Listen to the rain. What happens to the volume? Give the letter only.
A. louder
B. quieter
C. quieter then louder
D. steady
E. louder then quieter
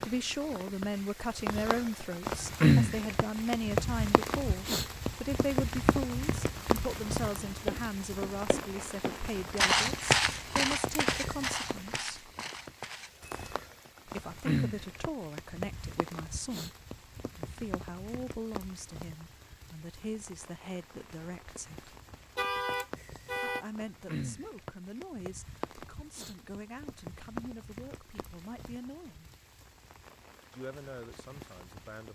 B.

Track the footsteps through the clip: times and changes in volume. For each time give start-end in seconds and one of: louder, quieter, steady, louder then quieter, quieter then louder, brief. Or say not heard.
6.3-13.6 louder then quieter.